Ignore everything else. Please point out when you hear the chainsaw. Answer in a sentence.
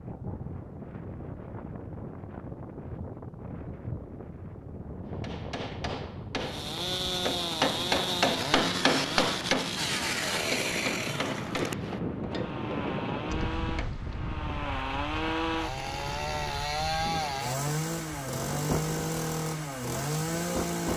The chainsaw can be heard from 6.4 to 20.9 s.